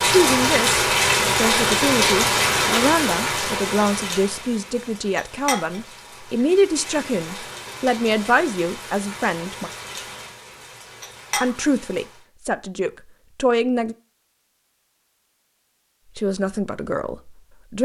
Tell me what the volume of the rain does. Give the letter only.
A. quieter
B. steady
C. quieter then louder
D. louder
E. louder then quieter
A.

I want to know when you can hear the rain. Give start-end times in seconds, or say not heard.
0.0-12.2.